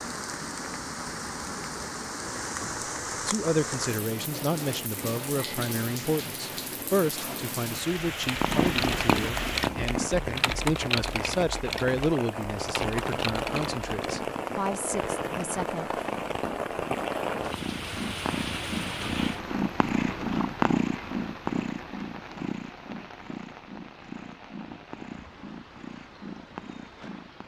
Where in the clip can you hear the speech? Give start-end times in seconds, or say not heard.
2.6-15.9.